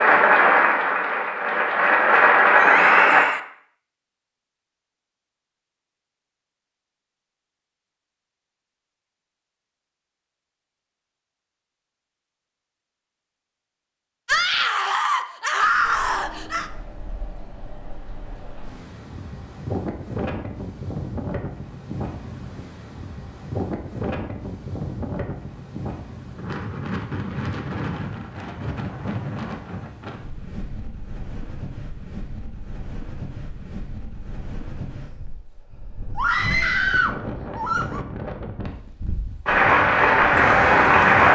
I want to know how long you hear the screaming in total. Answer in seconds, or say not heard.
5 s.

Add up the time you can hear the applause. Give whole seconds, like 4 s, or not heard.
5 s.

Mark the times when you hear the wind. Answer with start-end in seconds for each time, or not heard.
15.7-41.3.